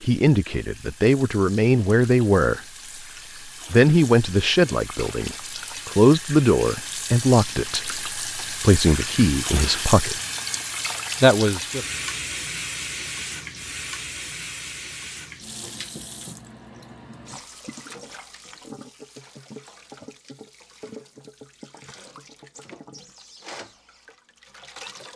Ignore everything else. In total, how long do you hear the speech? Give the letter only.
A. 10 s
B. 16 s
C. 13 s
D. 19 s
A.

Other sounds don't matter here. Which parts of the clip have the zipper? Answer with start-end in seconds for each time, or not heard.
not heard.